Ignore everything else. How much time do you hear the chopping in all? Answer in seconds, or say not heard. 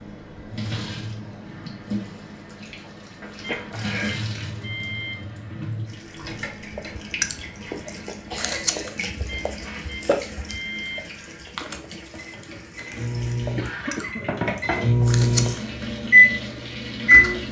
not heard.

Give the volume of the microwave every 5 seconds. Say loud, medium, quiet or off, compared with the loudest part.
quiet, quiet, quiet, loud.